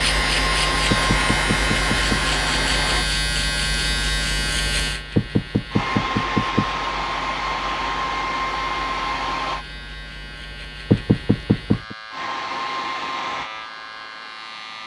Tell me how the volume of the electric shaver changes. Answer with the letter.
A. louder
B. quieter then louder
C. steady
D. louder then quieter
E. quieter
E.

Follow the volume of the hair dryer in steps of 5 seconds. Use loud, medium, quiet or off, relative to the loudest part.
loud, loud, medium.